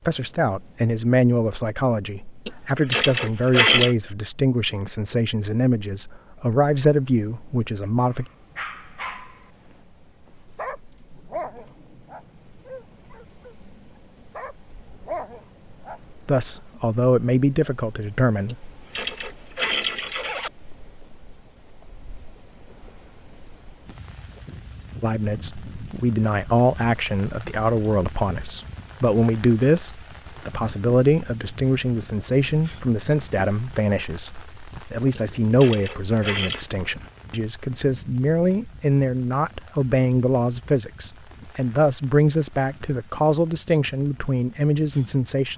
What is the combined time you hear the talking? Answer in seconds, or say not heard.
31 s.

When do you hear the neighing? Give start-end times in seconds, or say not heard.
2.5-4.0, 18.4-20.5, 35.1-36.6.